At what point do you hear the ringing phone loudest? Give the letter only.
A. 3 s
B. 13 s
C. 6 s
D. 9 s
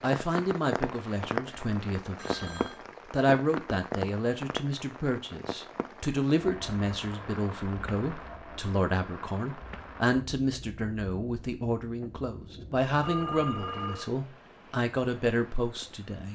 B.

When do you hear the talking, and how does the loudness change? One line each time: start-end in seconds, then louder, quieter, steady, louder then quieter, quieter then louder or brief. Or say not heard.
0.0-16.3 steady.